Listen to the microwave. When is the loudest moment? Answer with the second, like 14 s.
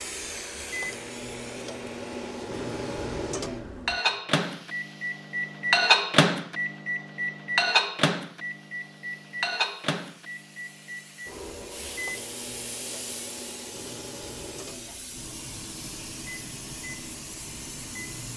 6 s.